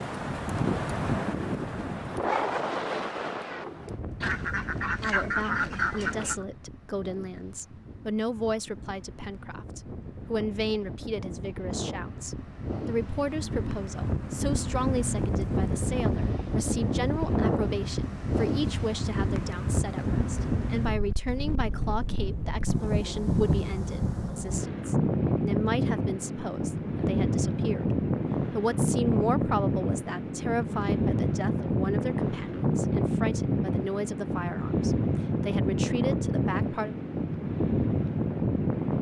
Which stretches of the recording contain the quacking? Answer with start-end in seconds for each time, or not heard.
4.2-6.5.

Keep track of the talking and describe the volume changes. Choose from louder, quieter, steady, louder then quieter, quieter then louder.
steady.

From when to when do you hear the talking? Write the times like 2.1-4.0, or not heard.
5.0-36.9.